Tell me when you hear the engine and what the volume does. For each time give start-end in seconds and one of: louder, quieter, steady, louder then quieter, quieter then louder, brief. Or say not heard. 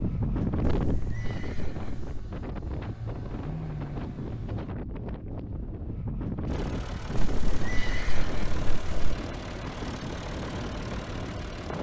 0.0-4.8 quieter then louder
6.5-11.7 steady.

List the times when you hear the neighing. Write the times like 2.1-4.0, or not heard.
0.7-2.2, 7.2-9.2.